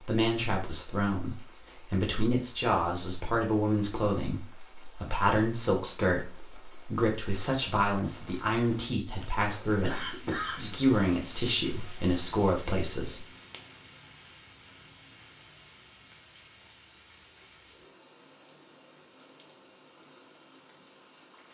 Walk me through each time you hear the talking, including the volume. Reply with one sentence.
You can hear the talking from 0.0 to 13.2 s, at a steady volume.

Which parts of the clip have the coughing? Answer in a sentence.
The coughing can be heard from 9.3 to 10.8 s.